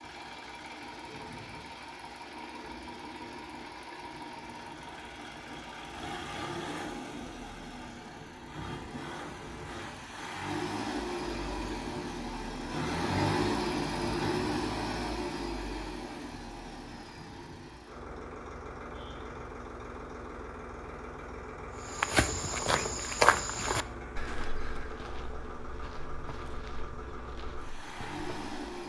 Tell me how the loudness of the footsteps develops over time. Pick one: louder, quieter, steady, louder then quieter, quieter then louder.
quieter.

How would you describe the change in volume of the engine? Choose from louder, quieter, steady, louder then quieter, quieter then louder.
louder then quieter.